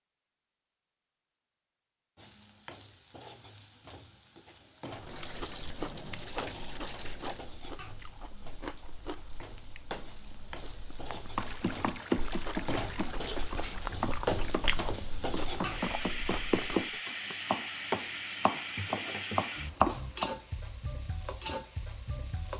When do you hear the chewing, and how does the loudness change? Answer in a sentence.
You can hear the chewing from 5.0 to 16.9 s, getting quieter then louder.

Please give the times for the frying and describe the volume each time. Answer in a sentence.
The frying can be heard from 2.1 to 22.5 s, getting louder.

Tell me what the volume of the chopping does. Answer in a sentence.
The volume of the chopping goes down, then up.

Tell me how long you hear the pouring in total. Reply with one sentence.
You can hear the pouring for 5 seconds altogether.